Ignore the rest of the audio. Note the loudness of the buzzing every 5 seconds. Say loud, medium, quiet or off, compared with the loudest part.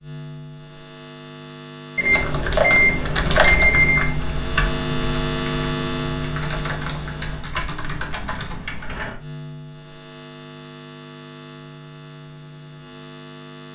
loud, loud, medium.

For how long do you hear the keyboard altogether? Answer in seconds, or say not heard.
7 s.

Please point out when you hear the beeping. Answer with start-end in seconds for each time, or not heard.
1.9-4.2.